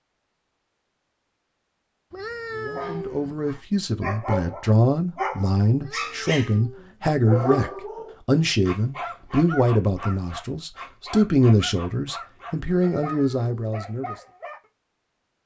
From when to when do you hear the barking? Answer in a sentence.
The barking can be heard from 2.8 to 14.6 s.